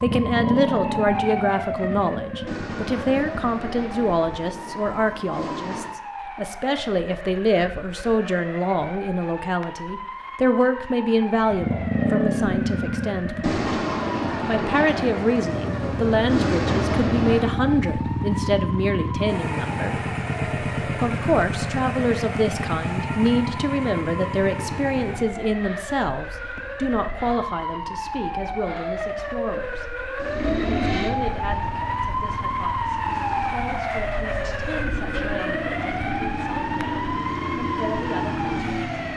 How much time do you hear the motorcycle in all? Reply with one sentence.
You can hear the motorcycle for 31 seconds altogether.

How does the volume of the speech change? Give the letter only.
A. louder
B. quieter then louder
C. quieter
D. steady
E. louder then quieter
C.